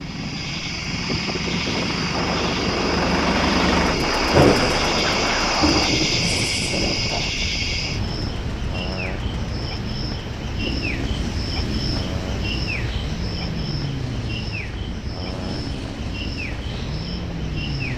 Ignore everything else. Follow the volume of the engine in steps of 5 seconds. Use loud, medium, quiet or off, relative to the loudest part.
loud, medium, medium, medium.